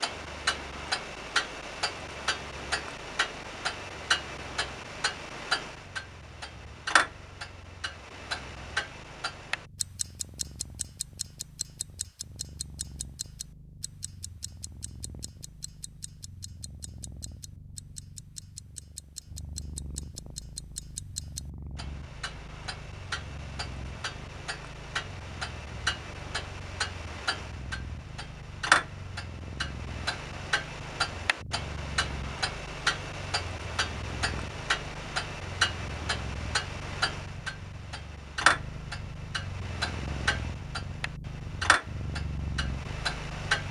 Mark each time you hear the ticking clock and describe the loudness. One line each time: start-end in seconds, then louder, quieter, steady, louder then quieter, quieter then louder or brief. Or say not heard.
0.0-43.6 quieter then louder.